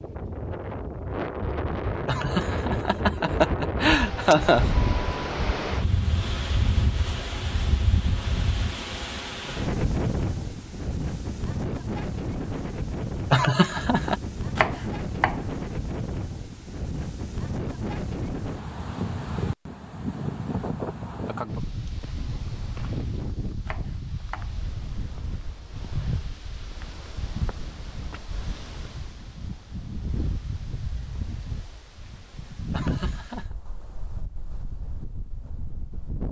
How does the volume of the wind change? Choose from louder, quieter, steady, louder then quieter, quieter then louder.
quieter.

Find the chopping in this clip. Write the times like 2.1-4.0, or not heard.
14.6-15.4, 23.6-24.5.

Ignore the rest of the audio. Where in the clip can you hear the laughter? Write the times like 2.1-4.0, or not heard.
2.0-4.7, 13.3-14.2, 32.7-33.5.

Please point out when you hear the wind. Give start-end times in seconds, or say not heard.
0.0-36.2.